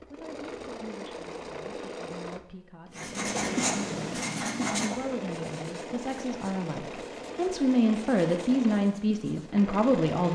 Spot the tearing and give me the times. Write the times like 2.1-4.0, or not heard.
not heard.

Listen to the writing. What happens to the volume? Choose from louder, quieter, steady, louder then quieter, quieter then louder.
quieter.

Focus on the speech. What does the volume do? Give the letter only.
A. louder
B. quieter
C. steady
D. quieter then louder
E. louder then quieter
A.